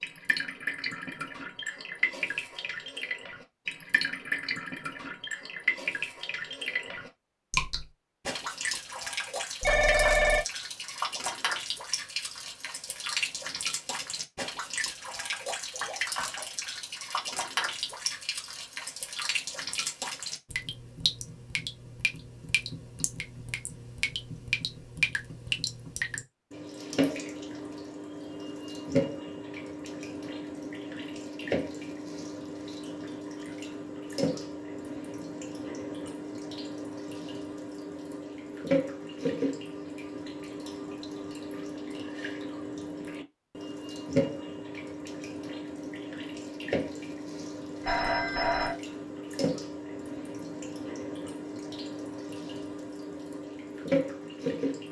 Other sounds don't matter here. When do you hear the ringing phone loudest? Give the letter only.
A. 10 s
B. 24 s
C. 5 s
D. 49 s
A.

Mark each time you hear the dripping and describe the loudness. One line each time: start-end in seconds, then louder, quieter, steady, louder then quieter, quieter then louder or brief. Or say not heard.
0.0-54.8 steady.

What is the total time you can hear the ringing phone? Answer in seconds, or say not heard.
2 s.